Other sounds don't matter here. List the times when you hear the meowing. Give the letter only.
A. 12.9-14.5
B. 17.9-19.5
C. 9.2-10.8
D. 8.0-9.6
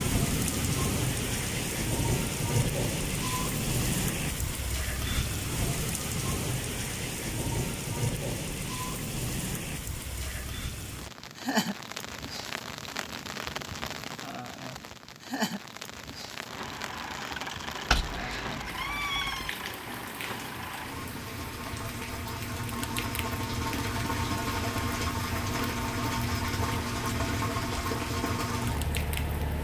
B.